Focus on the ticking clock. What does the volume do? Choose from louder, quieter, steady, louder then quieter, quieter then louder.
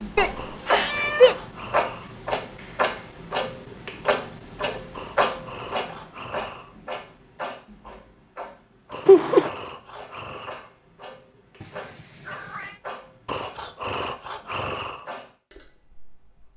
quieter.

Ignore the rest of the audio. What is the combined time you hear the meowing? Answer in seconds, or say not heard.
3 s.